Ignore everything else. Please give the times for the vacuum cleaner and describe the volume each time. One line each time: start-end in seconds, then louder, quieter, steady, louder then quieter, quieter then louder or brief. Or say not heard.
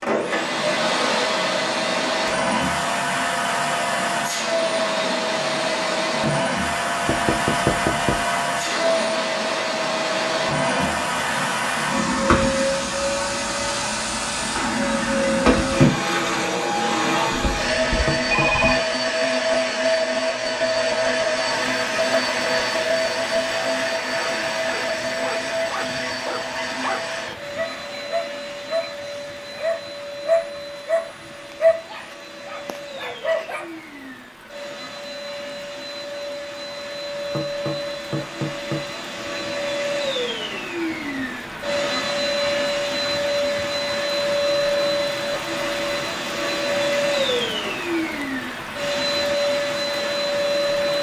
0.0-50.9 quieter then louder.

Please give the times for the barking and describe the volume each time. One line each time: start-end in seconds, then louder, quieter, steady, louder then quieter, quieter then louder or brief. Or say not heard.
24.1-33.7 louder.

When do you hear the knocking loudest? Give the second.
8 s.